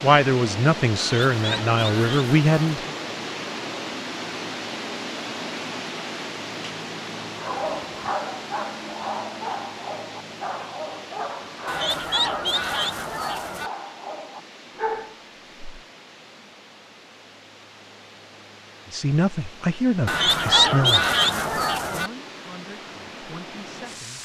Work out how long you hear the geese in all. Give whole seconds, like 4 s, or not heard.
6 s.